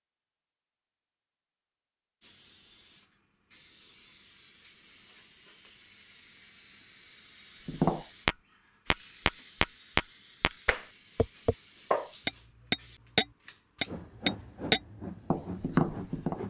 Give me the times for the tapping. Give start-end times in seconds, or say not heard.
7.7-16.4.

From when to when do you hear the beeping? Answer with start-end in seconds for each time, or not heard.
not heard.